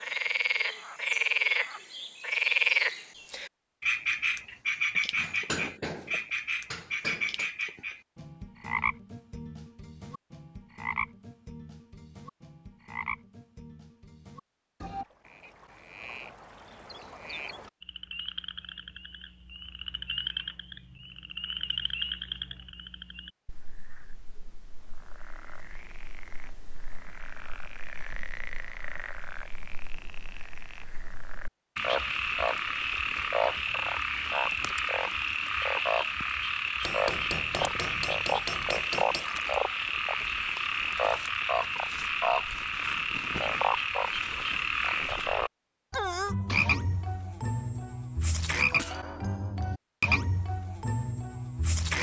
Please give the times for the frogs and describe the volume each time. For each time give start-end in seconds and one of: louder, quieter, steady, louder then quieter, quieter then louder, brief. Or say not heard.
0.0-51.9 quieter then louder.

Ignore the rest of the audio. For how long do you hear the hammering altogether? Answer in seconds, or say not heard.
5 s.